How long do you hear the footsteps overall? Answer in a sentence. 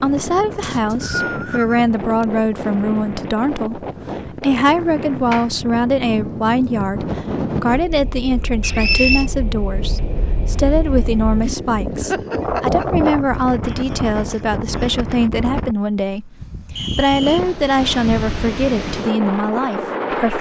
The footsteps can't be heard in this clip.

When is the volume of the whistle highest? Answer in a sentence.
The volume of the whistle peaks at 9 seconds.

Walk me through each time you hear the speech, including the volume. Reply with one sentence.
You can hear the speech from 0.0 to 20.3 s, at a steady volume.